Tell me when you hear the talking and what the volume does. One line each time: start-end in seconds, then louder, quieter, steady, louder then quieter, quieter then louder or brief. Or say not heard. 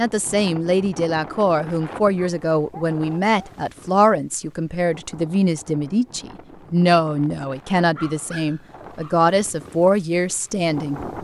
0.0-11.0 steady.